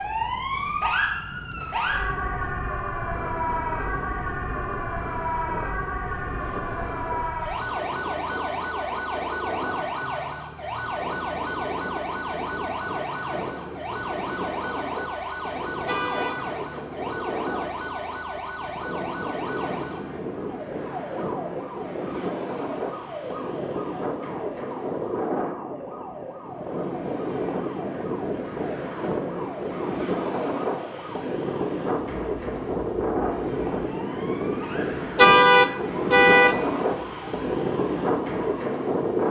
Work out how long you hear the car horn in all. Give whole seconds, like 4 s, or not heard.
2 s.